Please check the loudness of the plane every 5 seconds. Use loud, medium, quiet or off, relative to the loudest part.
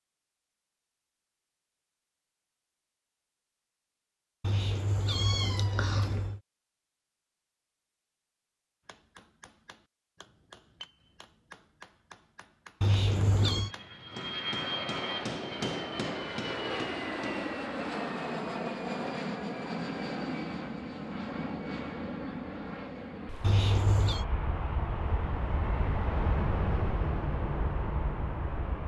off, off, loud, loud, loud, loud.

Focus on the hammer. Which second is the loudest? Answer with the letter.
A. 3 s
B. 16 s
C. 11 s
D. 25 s
B.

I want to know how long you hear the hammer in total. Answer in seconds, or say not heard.
9 s.